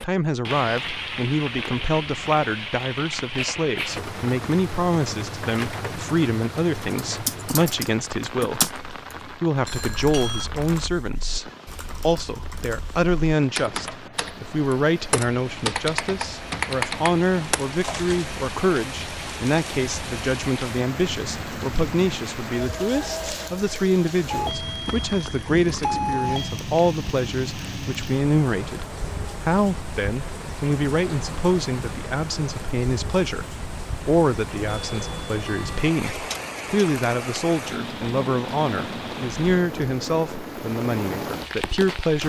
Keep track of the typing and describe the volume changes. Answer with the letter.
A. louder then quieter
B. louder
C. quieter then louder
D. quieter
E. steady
C.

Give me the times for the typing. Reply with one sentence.
The typing can be heard from 6.8 to 18.4 s.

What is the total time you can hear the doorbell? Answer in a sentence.
You can hear the doorbell for 4 seconds altogether.